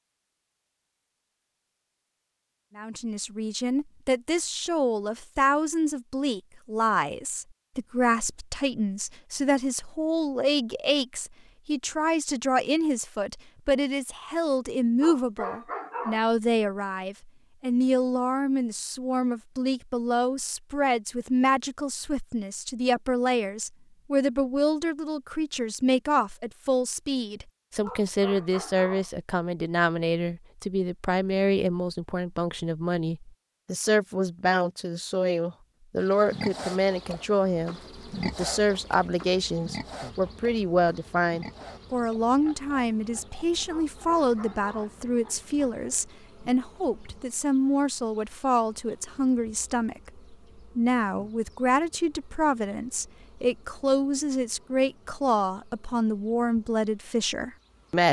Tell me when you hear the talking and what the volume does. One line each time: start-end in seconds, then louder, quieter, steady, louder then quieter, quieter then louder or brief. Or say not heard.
2.8-58.0 steady.